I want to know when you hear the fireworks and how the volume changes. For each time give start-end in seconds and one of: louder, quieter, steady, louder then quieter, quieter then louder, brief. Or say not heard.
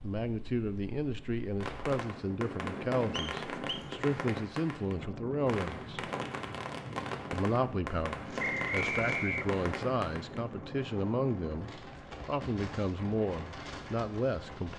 1.6-10.4 steady.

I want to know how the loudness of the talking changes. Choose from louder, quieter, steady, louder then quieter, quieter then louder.
steady.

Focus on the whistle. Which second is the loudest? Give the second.
9 s.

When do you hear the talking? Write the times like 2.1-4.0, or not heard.
0.0-6.1, 7.3-14.7.